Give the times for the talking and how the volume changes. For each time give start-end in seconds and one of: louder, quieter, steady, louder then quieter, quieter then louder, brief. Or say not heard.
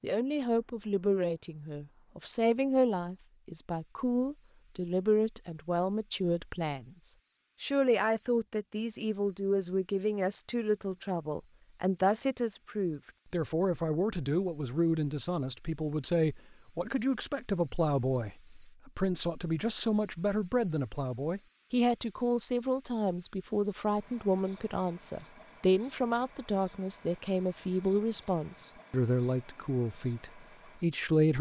0.0-31.3 steady.